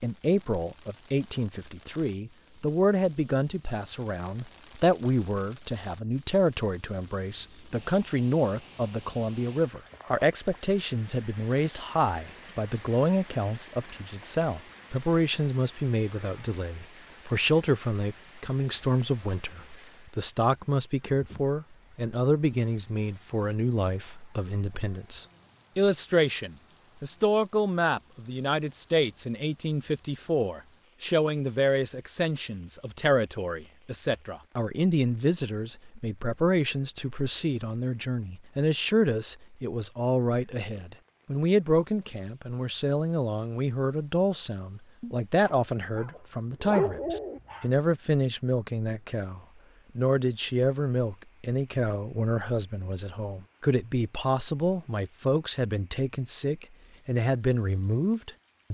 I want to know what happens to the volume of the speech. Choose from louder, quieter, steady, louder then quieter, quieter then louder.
steady.